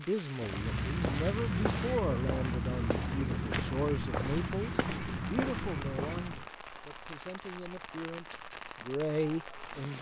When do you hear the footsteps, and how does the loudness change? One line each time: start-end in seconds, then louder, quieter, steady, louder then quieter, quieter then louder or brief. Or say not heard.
0.4-6.5 steady.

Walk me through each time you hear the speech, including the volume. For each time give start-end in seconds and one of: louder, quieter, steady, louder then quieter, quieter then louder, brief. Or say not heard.
0.0-9.9 quieter then louder.